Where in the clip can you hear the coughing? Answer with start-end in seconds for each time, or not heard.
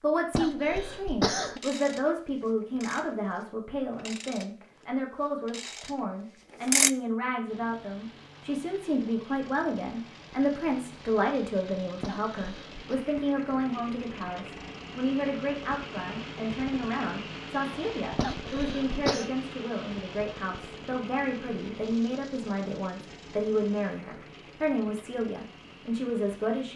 0.3-1.6, 12.0-12.9, 18.1-19.3.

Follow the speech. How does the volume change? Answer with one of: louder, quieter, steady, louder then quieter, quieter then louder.
steady.